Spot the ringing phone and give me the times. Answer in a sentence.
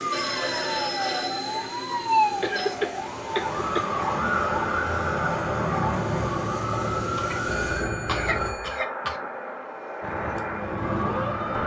You can hear the ringing phone from 0.1 to 2.8 s and from 7.5 to 8.8 s.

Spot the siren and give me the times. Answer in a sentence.
The siren can be heard from 0.0 to 8.6 s and from 10.0 to 11.6 s.